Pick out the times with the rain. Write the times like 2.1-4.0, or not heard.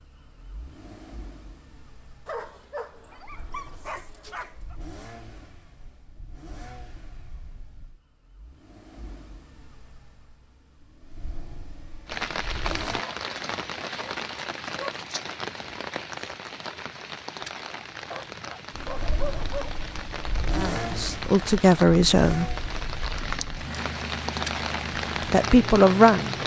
12.1-26.4.